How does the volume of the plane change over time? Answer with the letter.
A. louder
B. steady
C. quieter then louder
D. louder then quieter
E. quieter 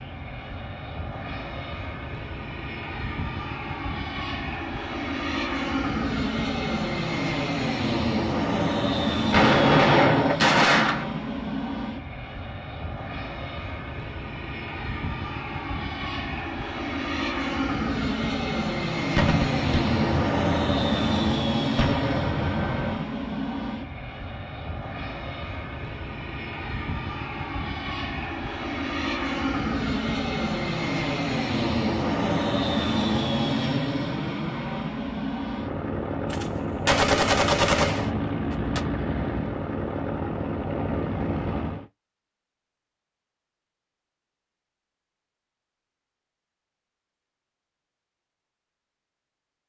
B.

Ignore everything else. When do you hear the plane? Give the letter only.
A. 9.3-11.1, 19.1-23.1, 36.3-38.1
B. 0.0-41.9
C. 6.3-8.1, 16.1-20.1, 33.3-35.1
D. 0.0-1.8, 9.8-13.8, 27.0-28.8
B.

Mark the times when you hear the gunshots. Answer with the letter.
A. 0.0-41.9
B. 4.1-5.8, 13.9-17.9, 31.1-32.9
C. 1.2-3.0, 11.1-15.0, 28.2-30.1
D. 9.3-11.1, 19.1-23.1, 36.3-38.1
D.